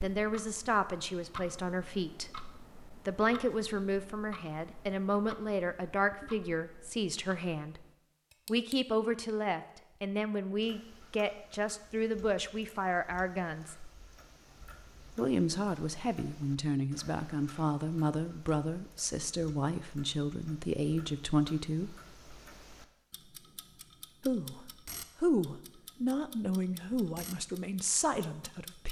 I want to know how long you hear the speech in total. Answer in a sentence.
The speech can be heard for 25 seconds in total.